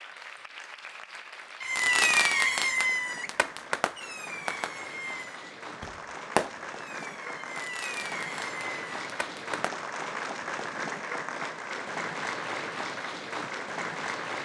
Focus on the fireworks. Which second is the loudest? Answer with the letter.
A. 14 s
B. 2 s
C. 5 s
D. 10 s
B.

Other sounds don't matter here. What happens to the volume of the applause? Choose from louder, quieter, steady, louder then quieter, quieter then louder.
louder.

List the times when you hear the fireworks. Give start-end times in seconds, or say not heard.
1.6-9.7.